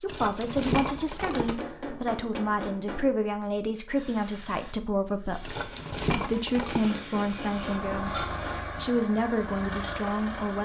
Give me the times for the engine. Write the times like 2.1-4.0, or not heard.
7.3-10.5.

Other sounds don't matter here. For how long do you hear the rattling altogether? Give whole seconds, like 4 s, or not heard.
3 s.